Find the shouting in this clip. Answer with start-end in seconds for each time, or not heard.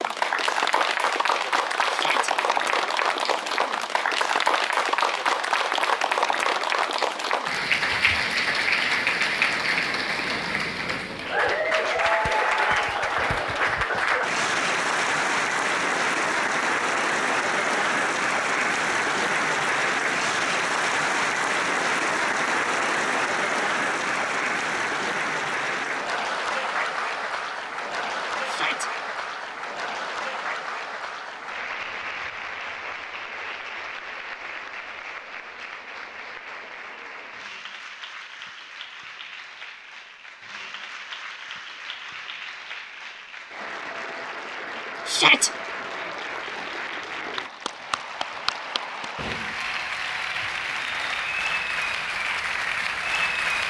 1.9-2.3, 28.4-28.9, 45.0-45.5.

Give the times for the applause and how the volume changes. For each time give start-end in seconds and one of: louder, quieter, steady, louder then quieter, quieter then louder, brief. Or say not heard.
0.0-53.6 quieter then louder.